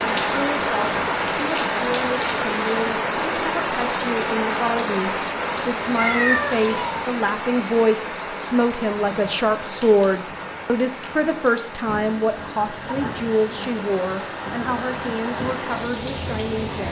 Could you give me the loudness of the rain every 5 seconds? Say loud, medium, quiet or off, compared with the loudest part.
loud, medium, medium, medium.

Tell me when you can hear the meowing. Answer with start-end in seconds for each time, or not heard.
5.5-7.0.